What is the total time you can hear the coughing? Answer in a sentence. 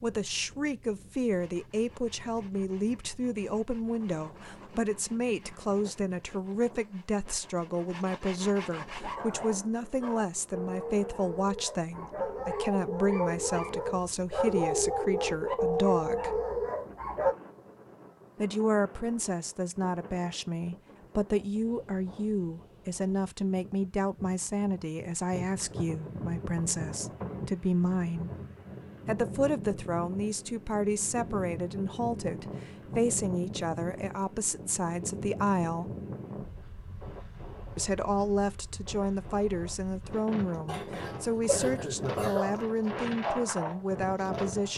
The coughing can be heard for 2 seconds in total.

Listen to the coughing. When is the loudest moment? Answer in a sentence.
The loudest moment of the coughing is at 42 seconds.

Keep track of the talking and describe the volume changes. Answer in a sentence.
The loudness of the talking stays about the same.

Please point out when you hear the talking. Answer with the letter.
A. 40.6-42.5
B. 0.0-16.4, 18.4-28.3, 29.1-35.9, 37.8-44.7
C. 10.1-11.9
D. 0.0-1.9
B.